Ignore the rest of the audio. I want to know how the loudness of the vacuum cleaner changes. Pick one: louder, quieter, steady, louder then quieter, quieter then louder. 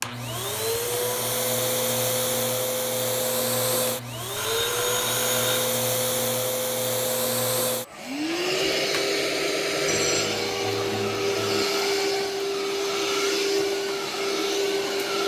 steady.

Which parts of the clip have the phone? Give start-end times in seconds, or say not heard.
4.3-5.8, 9.8-11.7.